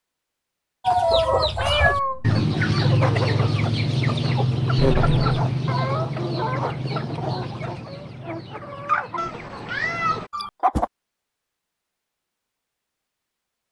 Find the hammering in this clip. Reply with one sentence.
The hammering can't be heard in this clip.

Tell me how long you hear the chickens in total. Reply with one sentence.
The chickens can be heard for 10 seconds in total.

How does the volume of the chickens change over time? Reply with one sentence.
The volume of the chickens goes down.